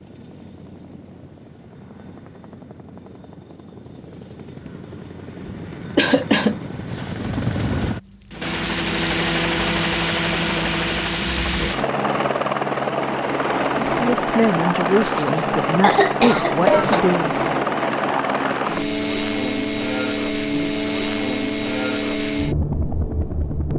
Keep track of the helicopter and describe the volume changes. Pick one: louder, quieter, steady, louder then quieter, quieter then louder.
louder.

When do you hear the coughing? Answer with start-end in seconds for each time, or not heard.
6.0-6.6, 15.1-17.0.